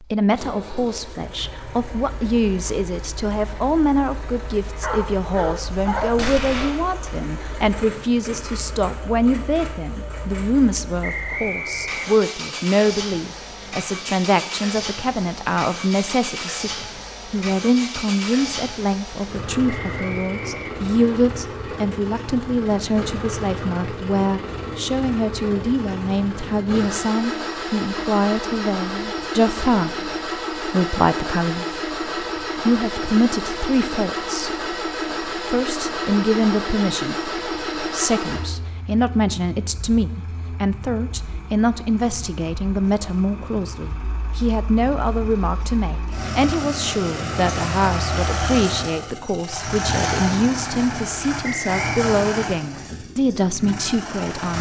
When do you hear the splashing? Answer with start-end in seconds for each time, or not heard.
not heard.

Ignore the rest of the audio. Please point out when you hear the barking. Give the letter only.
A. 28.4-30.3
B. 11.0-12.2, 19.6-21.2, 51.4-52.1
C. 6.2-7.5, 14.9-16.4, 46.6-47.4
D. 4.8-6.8
D.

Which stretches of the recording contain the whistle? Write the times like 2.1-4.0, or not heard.
11.0-12.2, 19.6-21.2, 51.4-52.1.